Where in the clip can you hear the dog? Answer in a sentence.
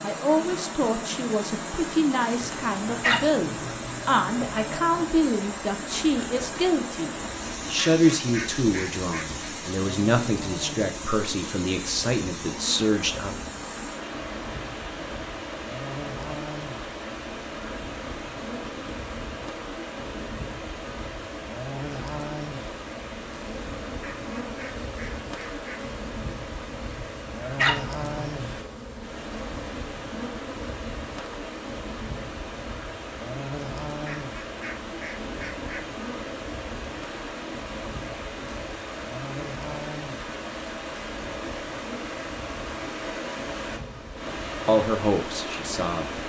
You can hear the dog from 2.4 to 4.0 s and from 26.9 to 28.6 s.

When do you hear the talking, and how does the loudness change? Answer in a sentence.
The talking can be heard from 0.0 to 13.3 s, at a steady volume; and briefly from 44.6 to 46.2 s.